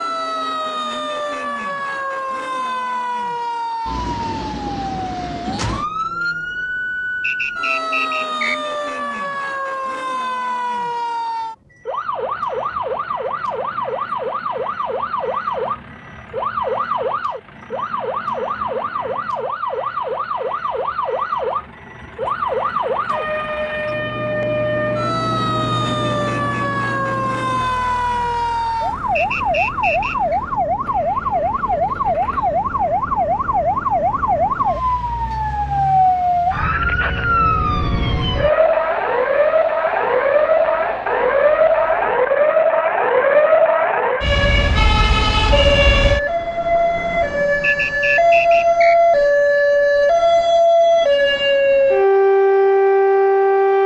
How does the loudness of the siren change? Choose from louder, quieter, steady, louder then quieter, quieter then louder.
louder.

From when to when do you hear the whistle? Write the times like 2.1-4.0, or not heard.
7.2-8.6, 29.1-30.4, 47.6-49.0.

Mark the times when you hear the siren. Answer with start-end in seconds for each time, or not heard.
0.0-53.8.